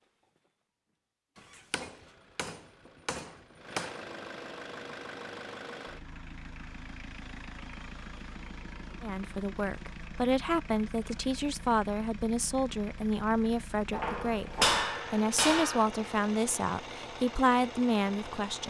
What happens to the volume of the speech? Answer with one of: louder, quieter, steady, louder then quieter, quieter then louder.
steady.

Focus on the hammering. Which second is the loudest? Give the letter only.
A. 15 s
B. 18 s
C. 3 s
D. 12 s
A.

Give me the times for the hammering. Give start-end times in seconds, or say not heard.
1.7-4.0, 13.9-15.8.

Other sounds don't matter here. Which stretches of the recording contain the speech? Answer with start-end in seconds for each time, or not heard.
9.0-18.6.